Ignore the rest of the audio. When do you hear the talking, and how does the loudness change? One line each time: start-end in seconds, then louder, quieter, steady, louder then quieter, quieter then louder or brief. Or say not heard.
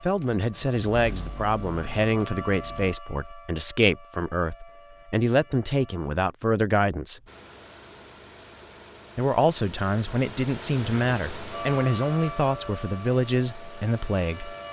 0.0-7.2 steady
9.2-14.6 steady.